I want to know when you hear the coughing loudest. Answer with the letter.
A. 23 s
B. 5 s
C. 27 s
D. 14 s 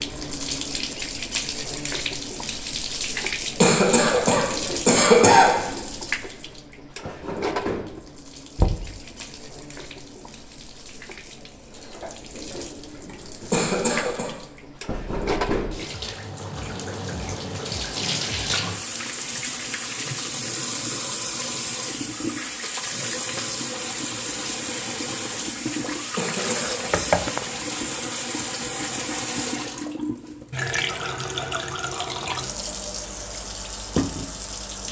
B.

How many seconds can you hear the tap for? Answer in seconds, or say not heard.
35 s.